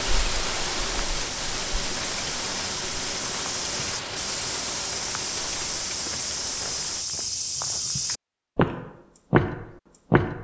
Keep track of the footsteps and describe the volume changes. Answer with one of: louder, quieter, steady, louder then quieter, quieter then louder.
louder.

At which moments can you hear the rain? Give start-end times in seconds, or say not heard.
0.0-7.0.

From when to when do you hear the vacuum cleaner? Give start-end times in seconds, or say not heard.
not heard.